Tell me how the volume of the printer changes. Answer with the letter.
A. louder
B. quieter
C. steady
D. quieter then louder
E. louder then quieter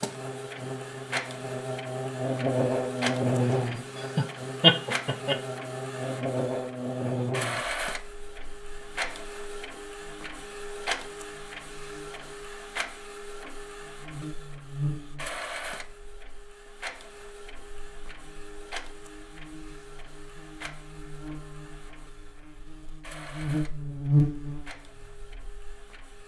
B.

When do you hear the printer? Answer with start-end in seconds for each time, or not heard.
0.0-26.2.